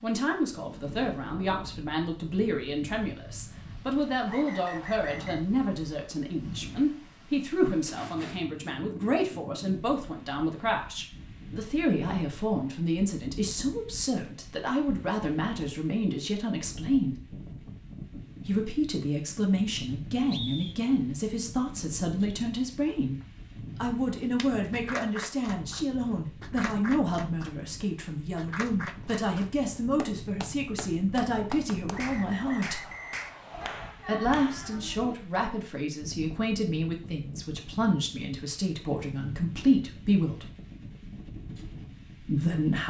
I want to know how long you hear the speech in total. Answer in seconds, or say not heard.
38 s.